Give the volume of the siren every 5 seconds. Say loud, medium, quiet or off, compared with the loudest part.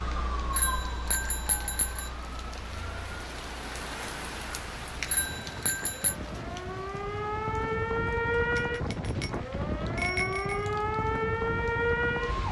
medium, loud, loud.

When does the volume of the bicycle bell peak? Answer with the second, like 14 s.
10 s.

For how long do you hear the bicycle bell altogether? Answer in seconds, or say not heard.
5 s.